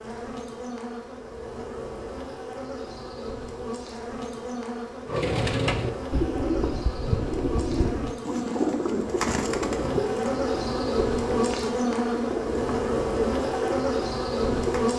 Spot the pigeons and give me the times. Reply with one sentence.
You can hear the pigeons from 5.0 to 14.8 s.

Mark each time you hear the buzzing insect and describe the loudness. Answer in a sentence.
You can hear the buzzing insect from 0.0 to 14.9 s, getting louder.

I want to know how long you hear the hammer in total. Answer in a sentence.
You can't hear the hammer here.